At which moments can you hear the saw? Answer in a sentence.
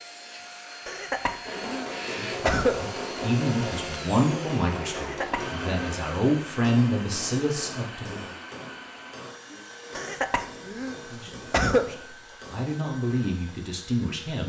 You can't hear the saw here.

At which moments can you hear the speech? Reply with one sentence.
The speech can be heard from 2.0 to 8.3 s and from 11.1 to 14.4 s.